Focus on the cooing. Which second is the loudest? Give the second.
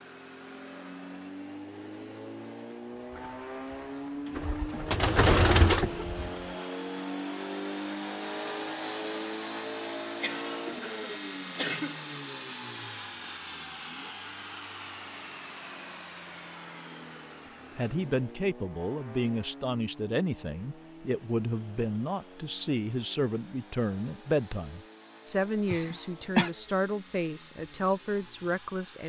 5 s.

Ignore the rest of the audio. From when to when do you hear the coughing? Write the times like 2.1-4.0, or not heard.
5.2-6.0, 10.2-12.0, 25.7-26.5.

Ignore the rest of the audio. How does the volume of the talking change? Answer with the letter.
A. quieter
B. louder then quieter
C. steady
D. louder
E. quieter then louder
C.